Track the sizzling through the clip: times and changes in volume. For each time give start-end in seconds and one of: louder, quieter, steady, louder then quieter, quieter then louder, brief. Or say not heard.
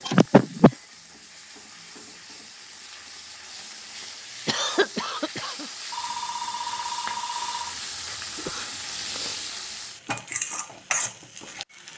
0.0-11.9 louder.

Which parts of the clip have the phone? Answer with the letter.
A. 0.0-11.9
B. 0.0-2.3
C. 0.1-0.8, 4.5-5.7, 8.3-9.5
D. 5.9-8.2
D.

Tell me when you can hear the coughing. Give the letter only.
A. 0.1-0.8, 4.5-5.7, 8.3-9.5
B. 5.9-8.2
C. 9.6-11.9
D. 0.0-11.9
A.